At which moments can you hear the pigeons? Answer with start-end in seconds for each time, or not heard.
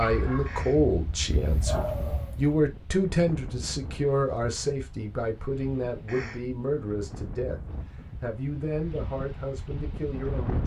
not heard.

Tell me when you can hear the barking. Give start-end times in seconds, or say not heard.
0.0-2.5.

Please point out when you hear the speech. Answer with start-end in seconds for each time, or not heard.
0.0-7.6, 8.2-10.6.